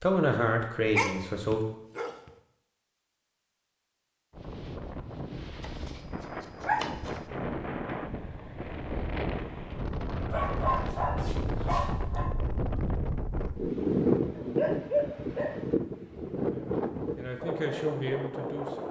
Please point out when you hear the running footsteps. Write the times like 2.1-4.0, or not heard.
not heard.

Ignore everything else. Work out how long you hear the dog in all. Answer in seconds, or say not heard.
6 s.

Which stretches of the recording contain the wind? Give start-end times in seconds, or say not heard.
4.3-18.8.